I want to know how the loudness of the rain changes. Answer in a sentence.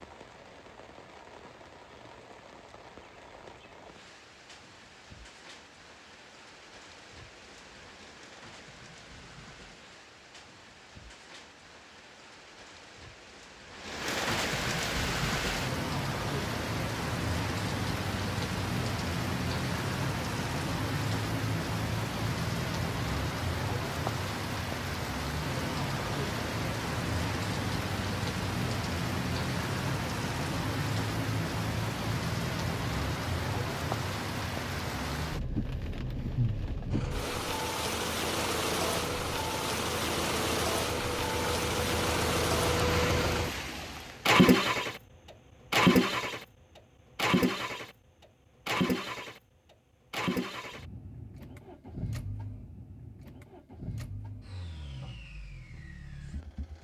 The volume of the rain goes up.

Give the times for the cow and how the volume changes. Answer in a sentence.
You can't hear the cow here.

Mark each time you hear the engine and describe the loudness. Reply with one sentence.
The engine can be heard from 36.9 to 56.7 s, getting louder then quieter.